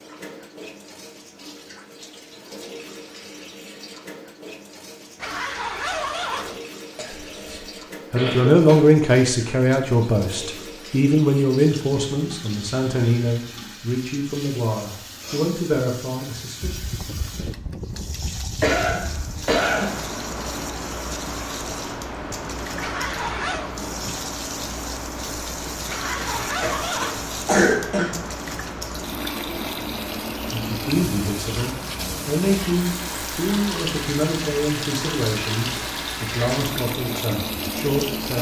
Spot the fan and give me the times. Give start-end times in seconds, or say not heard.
16.6-38.3.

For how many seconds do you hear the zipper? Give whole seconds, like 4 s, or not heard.
4 s.